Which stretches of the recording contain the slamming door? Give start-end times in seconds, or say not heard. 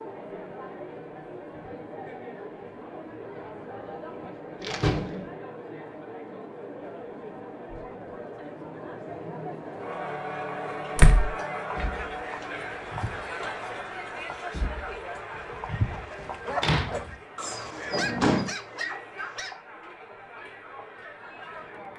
4.6-5.3, 10.9-11.3, 16.6-17.1, 17.8-18.5.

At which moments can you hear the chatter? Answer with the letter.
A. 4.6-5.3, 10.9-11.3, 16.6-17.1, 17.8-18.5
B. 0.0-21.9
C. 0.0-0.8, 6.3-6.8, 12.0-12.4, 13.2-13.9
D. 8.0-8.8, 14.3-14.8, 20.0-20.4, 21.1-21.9
B.